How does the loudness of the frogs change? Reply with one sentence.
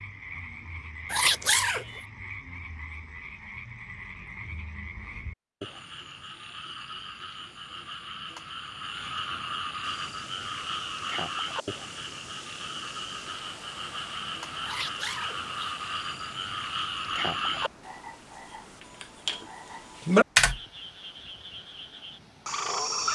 The volume of the frogs goes up.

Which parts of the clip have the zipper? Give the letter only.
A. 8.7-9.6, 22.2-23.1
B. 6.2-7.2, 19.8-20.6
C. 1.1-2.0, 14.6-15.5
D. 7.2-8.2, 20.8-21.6
C.